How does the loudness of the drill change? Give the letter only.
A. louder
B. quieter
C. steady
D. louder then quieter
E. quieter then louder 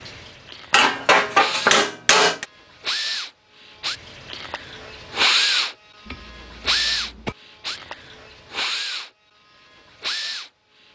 D.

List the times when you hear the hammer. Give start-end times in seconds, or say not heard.
0.7-2.5, 6.0-7.3.